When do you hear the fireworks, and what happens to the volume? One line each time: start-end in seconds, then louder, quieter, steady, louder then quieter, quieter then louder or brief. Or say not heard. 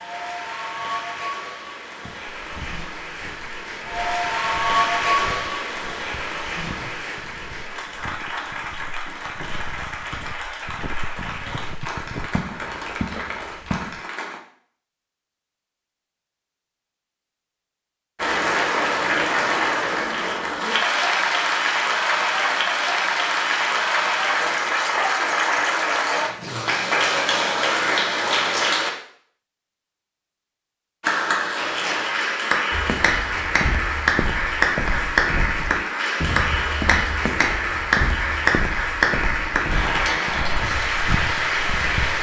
not heard.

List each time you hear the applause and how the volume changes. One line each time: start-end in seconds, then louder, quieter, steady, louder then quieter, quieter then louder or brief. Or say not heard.
0.0-14.4 louder then quieter
18.1-28.9 steady
31.0-42.1 steady.